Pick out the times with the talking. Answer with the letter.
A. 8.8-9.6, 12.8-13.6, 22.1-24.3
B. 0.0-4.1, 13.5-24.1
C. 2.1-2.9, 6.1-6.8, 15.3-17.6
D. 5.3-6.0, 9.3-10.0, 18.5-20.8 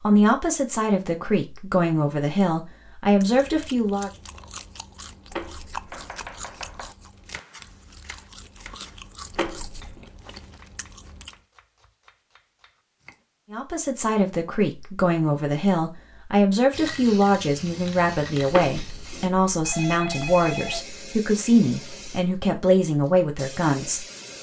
B.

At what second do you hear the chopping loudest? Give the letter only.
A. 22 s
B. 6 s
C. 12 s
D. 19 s
B.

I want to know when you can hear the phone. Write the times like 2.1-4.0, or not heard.
5.3-6.0, 9.3-10.0, 18.5-20.8.